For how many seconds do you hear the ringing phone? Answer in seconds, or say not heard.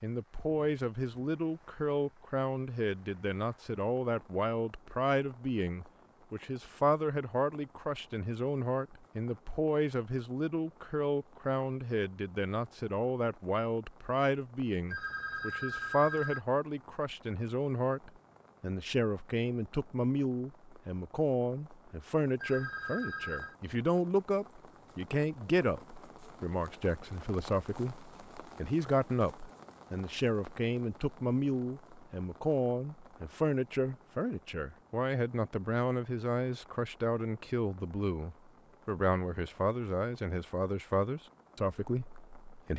3 s.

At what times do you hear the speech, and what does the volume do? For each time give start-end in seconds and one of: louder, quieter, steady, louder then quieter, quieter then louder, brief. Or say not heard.
0.0-42.7 steady.